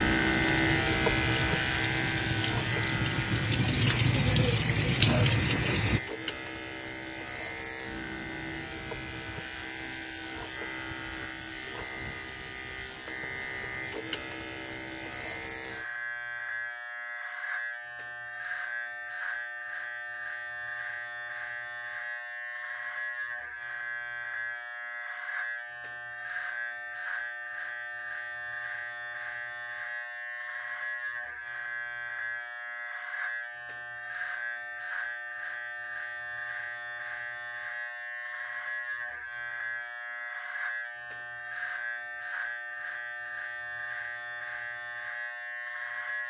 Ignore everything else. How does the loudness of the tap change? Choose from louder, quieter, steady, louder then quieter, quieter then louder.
louder.